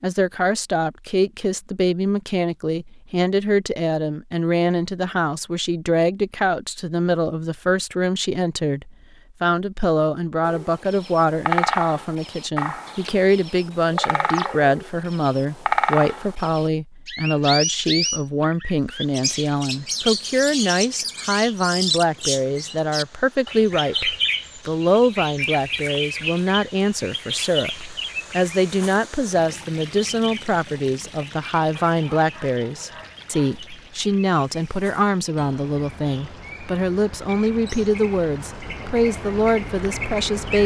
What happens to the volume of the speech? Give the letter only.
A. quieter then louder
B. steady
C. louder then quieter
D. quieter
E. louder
B.